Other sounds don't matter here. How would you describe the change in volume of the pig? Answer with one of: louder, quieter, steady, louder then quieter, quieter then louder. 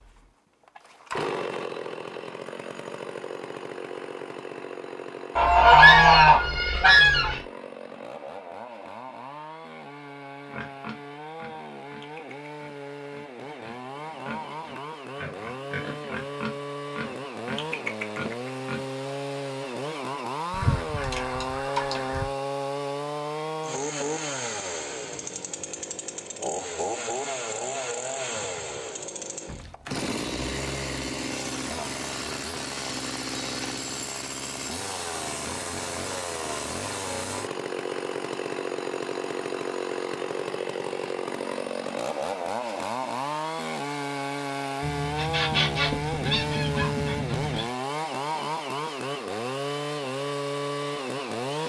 quieter then louder.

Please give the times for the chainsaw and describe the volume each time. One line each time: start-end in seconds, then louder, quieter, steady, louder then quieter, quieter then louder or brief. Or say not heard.
0.0-51.6 louder.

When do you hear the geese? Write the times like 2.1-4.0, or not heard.
5.3-7.4, 20.5-22.2, 44.8-47.6.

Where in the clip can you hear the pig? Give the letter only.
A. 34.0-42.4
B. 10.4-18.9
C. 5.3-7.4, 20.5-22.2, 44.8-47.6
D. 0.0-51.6
B.